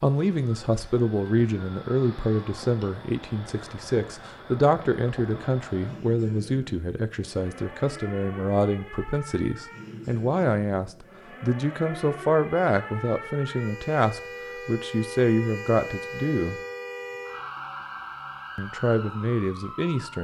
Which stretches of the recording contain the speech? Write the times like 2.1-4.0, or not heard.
0.0-16.6, 18.6-20.2.